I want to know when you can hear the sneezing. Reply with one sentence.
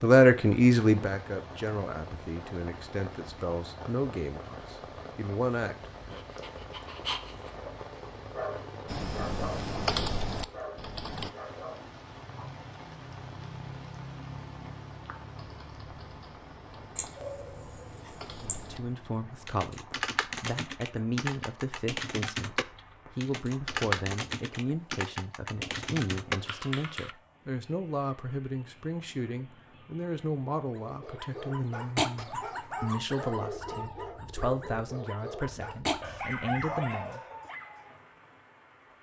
You can hear the sneezing from 16.9 to 18.7 s.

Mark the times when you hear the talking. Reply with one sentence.
The talking can be heard from 0.0 to 6.2 s and from 18.5 to 37.2 s.